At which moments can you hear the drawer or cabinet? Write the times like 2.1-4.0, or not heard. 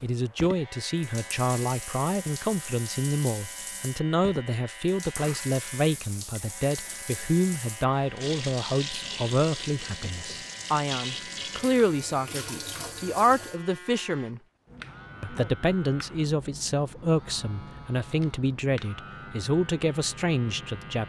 not heard.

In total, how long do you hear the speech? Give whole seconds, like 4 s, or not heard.
20 s.